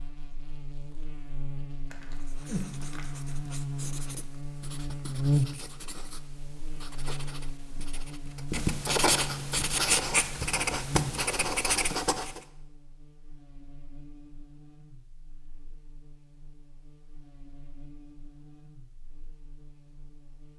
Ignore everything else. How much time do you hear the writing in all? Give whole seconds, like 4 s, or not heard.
10 s.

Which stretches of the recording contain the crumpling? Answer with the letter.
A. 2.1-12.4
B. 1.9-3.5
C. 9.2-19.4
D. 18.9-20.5
B.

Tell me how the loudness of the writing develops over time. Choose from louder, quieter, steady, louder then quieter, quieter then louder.
louder.